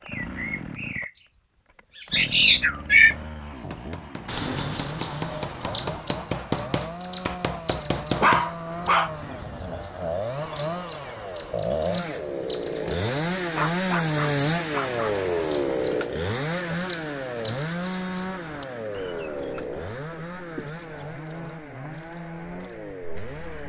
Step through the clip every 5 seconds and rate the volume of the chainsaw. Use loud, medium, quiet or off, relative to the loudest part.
medium, medium, loud, loud, medium.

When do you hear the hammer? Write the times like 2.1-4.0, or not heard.
3.1-8.4.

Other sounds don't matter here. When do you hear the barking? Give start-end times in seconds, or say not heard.
8.2-9.1, 13.6-15.1.